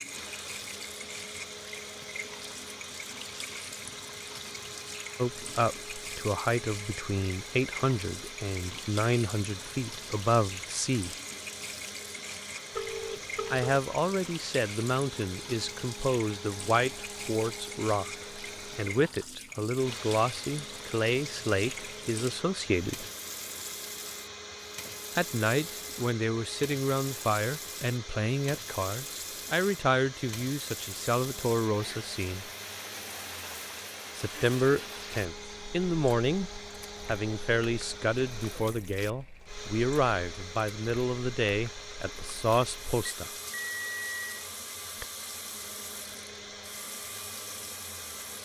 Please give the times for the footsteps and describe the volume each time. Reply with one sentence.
The footsteps can't be heard in this clip.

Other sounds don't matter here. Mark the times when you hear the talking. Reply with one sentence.
You can hear the talking from 5.2 to 11.2 s, from 13.5 to 23.1 s, from 25.1 to 32.5 s and from 34.1 to 43.3 s.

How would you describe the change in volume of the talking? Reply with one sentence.
The loudness of the talking stays about the same.